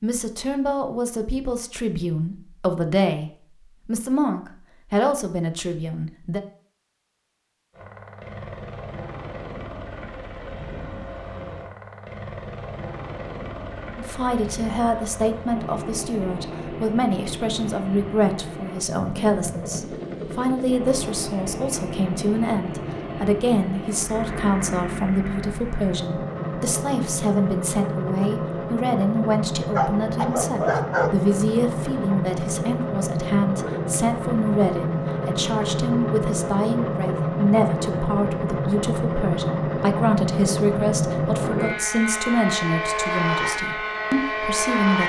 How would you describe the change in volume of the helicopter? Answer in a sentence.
The loudness of the helicopter goes up.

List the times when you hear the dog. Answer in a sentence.
The dog can be heard from 29.8 to 31.2 s.